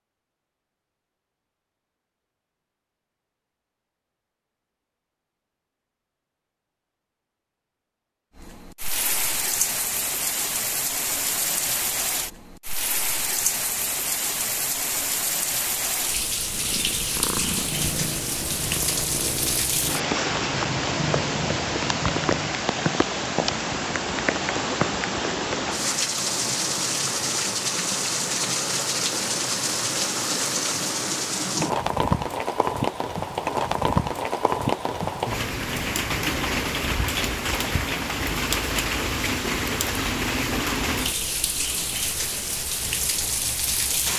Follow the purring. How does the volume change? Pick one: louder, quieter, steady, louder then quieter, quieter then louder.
steady.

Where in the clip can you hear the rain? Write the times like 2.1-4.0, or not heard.
8.3-44.1.